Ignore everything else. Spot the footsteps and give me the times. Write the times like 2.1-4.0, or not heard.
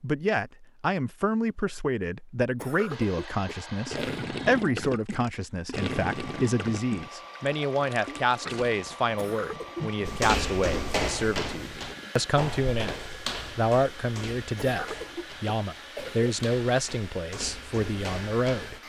10.1-18.8.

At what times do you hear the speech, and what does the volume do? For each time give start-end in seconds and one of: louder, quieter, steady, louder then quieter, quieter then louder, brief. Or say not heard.
0.0-18.8 steady.